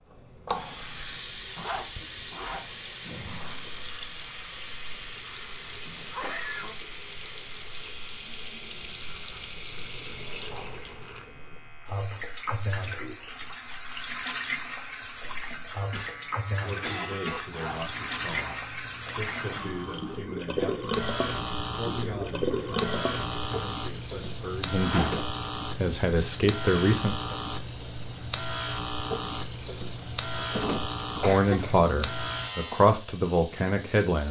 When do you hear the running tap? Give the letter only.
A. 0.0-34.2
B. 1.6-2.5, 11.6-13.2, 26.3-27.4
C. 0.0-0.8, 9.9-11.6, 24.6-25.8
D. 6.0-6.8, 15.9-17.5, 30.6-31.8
A.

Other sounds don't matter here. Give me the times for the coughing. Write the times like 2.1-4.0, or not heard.
6.0-6.8, 15.9-17.5, 30.6-31.8.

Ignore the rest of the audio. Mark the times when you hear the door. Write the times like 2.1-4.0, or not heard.
not heard.